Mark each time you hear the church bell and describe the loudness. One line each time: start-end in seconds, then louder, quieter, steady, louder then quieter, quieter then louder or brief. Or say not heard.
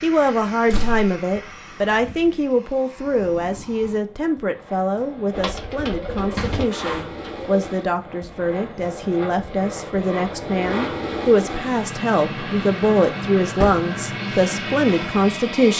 not heard.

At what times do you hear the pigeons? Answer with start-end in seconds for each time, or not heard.
5.3-7.7.